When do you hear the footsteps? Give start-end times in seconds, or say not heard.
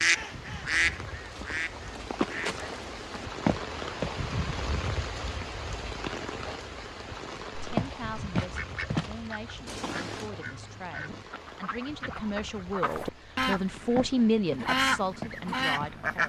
0.0-4.3, 7.8-10.3, 13.9-15.9.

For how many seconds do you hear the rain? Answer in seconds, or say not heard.
16 s.